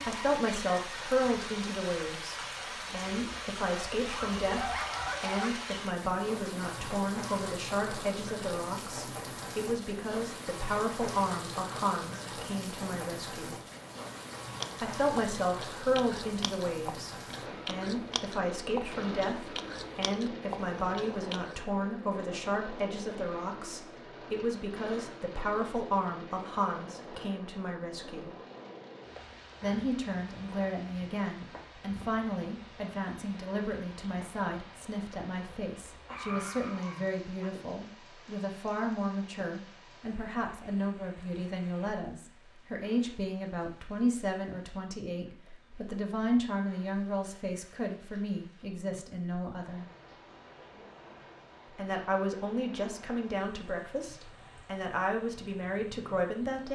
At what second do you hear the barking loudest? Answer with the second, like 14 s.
5 s.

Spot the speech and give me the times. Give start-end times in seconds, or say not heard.
0.0-13.6, 14.8-28.4, 29.6-49.9, 51.7-56.7.